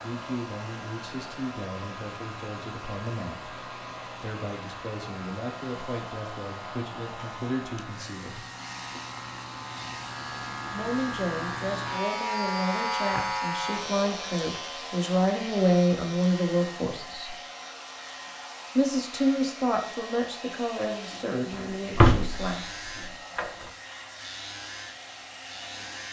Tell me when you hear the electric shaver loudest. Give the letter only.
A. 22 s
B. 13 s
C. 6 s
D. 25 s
B.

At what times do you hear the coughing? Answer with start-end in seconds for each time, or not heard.
not heard.